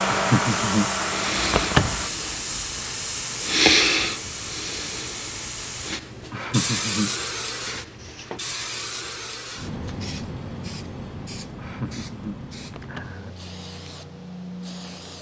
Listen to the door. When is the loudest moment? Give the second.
2 s.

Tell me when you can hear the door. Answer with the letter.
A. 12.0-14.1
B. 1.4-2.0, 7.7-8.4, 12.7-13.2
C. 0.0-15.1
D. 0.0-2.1
B.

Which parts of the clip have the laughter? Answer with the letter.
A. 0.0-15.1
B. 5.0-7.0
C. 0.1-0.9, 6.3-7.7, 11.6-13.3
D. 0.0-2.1
C.